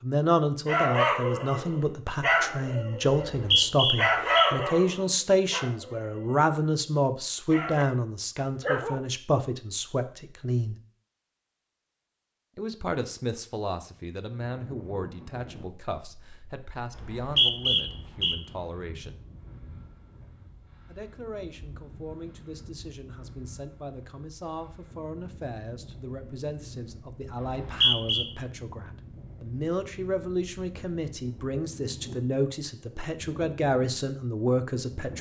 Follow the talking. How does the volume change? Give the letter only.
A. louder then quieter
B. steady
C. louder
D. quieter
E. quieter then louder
E.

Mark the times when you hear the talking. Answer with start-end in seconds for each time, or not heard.
0.0-10.8, 12.6-19.2, 20.9-35.1.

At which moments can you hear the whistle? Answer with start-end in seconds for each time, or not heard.
3.2-4.5, 16.9-18.4, 27.4-28.2.